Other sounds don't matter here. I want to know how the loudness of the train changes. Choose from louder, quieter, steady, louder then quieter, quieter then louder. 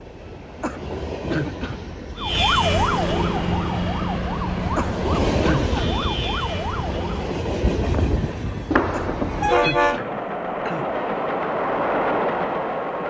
louder.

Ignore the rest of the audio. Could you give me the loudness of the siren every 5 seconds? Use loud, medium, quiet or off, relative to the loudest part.
loud, medium, off.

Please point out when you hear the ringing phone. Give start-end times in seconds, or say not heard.
8.7-9.8.